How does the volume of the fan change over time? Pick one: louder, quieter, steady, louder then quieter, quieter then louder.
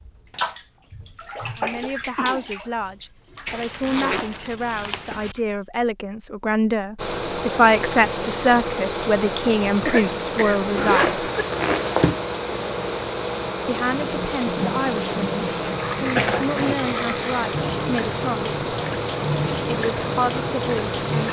steady.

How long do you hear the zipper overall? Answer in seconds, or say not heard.
3 s.